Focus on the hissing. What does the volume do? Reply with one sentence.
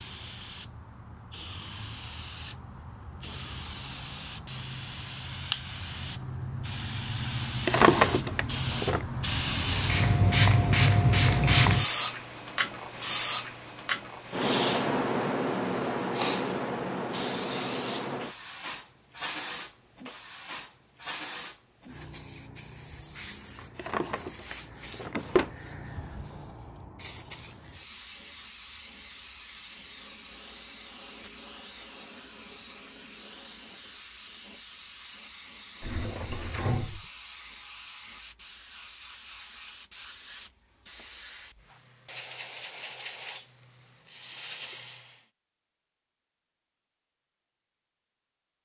The loudness of the hissing goes up, then down.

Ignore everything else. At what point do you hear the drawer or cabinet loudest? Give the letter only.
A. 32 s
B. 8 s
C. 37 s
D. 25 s
B.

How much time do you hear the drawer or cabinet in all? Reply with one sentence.
You can hear the drawer or cabinet for 4 seconds altogether.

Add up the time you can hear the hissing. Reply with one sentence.
You can hear the hissing for 45 seconds altogether.